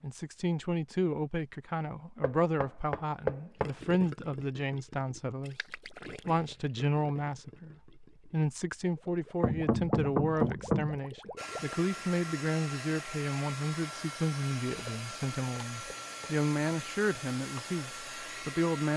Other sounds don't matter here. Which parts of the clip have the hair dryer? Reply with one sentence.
The hair dryer can be heard from 11.3 to 18.9 s.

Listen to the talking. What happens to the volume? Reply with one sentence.
The volume of the talking stays about the same.